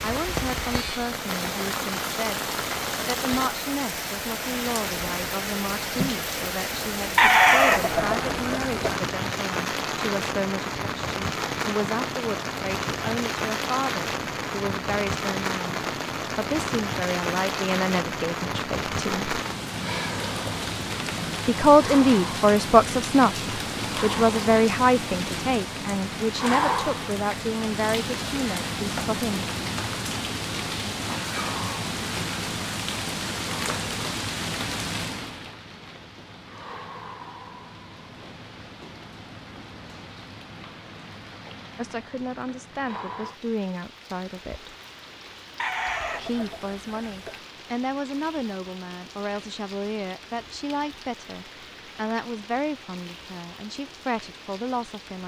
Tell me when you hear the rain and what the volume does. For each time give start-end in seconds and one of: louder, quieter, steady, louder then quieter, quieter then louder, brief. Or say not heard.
0.0-55.2 quieter.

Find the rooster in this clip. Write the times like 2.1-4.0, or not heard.
7.2-9.0, 45.5-47.4.